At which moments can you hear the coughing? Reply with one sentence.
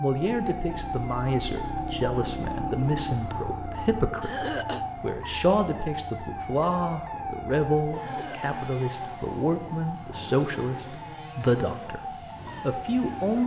The coughing can be heard from 4.2 to 4.8 s and from 8.0 to 8.7 s.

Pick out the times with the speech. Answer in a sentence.
You can hear the speech from 0.0 to 12.0 s and from 12.6 to 13.4 s.